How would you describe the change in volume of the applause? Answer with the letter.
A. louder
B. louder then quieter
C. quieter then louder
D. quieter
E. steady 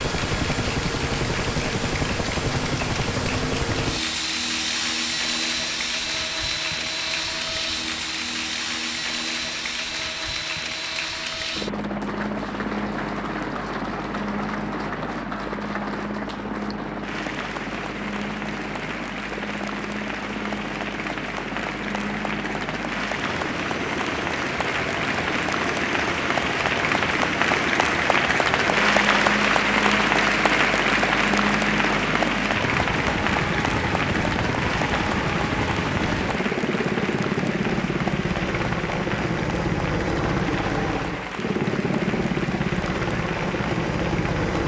B.